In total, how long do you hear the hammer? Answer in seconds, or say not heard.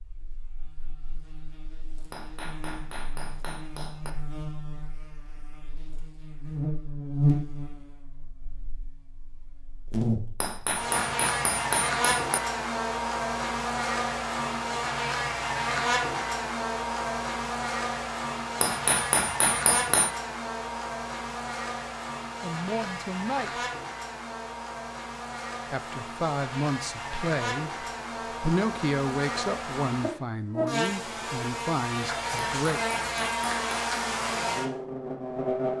7 s.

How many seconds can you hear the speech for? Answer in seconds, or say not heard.
8 s.